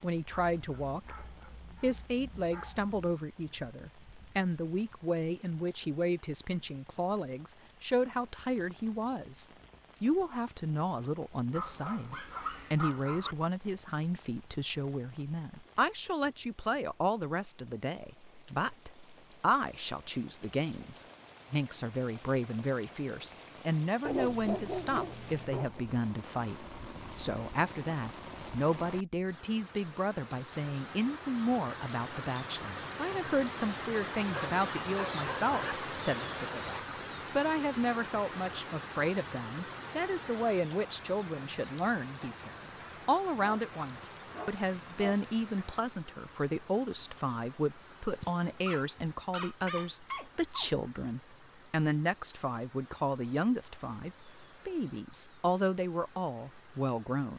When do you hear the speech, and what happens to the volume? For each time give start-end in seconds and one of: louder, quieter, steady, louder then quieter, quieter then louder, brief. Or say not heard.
0.0-57.3 steady.